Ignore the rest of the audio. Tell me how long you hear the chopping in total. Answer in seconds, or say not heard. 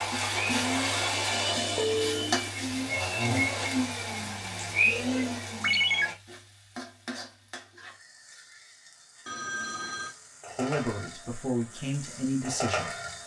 not heard.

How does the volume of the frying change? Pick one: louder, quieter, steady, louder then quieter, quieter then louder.
quieter then louder.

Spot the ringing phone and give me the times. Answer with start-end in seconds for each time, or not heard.
1.8-2.3, 5.6-6.0, 9.2-10.2.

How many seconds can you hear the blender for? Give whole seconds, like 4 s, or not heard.
6 s.